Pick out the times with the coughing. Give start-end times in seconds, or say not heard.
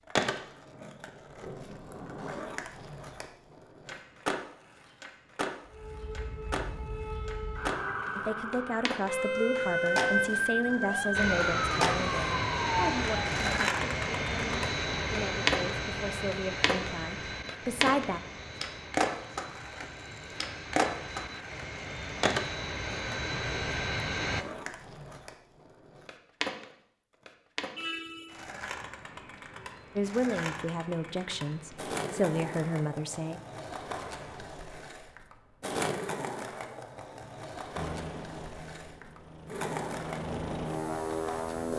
not heard.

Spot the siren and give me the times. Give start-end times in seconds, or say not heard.
5.7-13.3.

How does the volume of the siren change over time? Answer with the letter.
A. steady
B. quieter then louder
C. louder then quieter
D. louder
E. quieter
D.